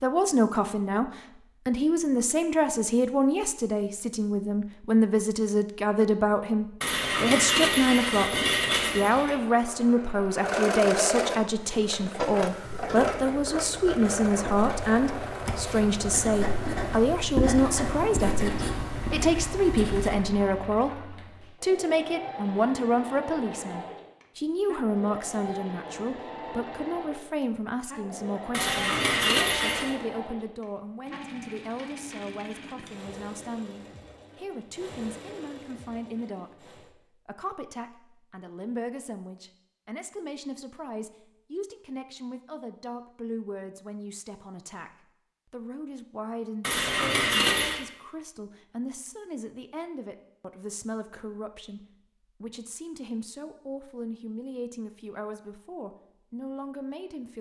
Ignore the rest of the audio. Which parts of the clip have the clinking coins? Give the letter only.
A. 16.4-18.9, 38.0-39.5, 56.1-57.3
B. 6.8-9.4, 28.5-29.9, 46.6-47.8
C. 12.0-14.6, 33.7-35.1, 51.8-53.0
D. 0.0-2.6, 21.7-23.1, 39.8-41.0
B.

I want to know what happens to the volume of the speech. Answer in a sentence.
The loudness of the speech goes down.